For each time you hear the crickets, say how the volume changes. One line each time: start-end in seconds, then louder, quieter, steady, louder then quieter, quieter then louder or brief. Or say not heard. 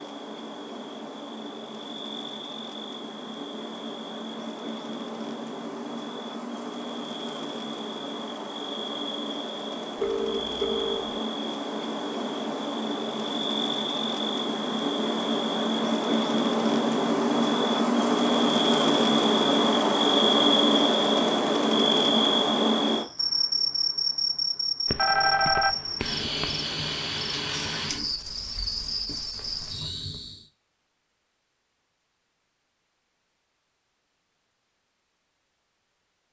0.0-30.4 louder then quieter.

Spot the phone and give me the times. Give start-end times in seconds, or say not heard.
10.0-11.2, 24.9-26.5.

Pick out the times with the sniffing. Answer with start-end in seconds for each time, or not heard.
not heard.